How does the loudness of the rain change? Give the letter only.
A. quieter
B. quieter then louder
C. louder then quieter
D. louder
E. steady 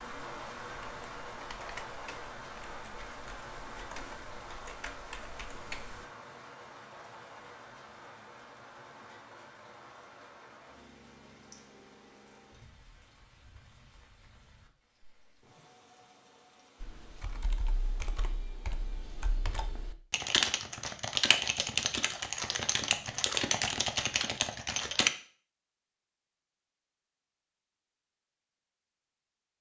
A.